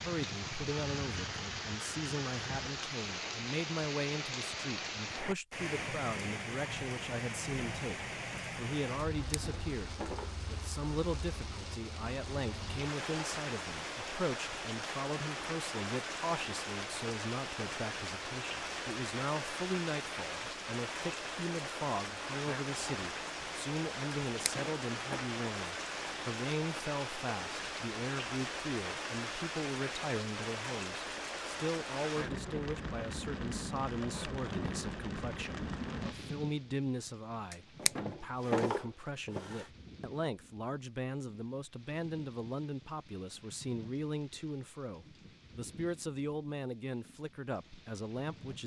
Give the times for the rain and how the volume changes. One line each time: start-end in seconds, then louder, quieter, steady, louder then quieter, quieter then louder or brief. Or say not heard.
0.0-48.6 quieter.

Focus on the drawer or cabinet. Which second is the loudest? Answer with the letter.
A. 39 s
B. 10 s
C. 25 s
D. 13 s
A.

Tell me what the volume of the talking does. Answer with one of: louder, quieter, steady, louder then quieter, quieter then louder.
steady.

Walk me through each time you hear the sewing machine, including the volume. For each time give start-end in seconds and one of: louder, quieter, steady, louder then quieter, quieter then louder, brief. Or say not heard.
not heard.